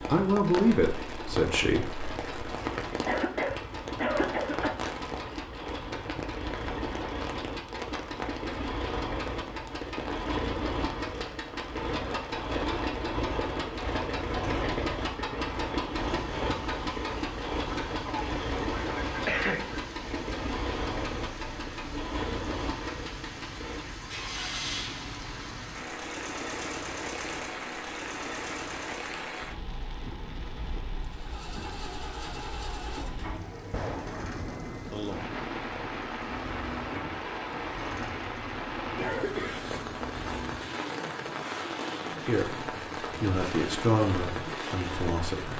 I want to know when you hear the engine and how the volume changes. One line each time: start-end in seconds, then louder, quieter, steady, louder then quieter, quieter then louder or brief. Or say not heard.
0.0-29.2 louder then quieter
31.0-45.5 steady.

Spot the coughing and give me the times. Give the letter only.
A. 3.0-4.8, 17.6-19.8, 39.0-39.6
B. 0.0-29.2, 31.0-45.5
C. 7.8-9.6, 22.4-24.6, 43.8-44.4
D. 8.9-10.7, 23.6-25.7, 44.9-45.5
A.